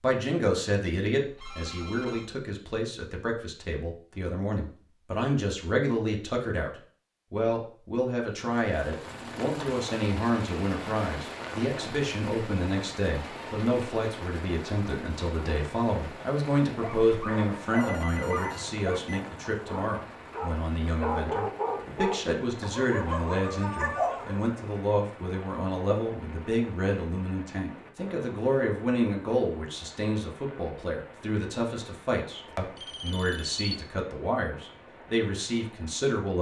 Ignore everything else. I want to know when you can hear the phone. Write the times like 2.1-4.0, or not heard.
1.2-2.3, 17.8-19.2, 32.5-33.8.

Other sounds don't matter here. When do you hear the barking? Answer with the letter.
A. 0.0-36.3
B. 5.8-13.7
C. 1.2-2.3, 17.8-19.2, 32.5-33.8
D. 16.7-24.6
D.